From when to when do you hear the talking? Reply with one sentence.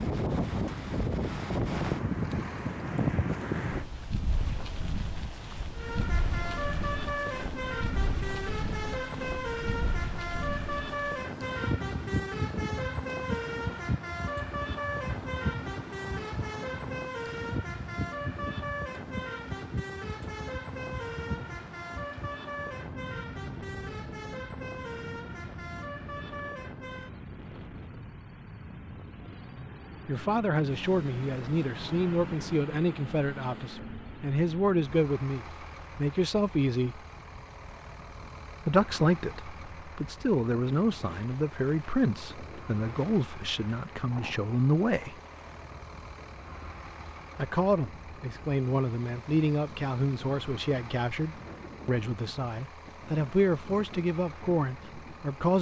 The talking can be heard from 30.1 to 37.0 s, from 38.6 to 45.1 s and from 47.4 to 55.5 s.